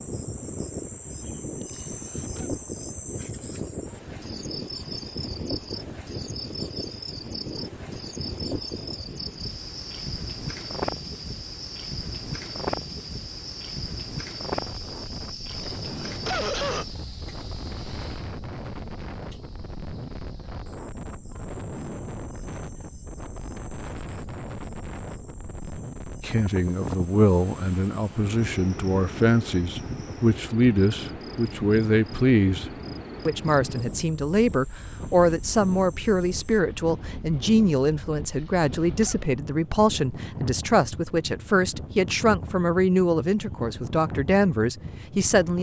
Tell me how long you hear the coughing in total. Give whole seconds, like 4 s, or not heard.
3 s.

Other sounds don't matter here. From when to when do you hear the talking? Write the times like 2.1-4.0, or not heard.
26.2-32.6, 33.2-45.5.